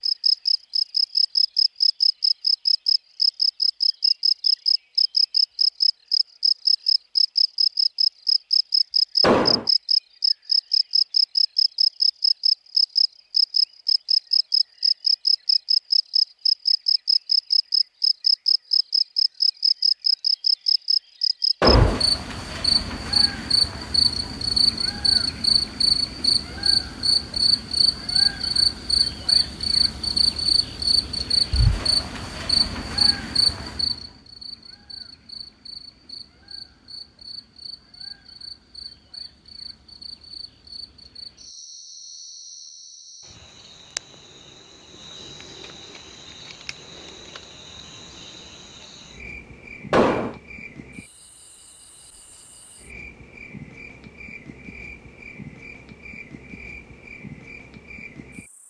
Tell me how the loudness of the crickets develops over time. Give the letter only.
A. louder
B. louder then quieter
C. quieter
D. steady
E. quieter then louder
C.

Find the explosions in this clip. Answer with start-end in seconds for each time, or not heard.
9.2-9.7, 21.6-22.1, 49.9-50.4.